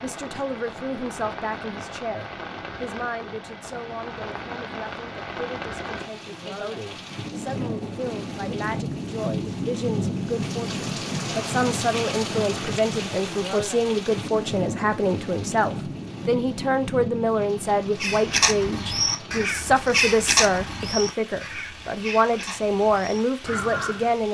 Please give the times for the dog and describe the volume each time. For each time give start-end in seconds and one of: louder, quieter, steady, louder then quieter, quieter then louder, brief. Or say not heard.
not heard.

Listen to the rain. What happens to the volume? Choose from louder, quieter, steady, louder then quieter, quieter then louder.
louder then quieter.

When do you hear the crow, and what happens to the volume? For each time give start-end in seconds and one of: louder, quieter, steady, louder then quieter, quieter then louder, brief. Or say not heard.
18.0-24.1 quieter.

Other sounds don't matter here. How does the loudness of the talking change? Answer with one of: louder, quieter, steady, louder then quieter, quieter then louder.
louder.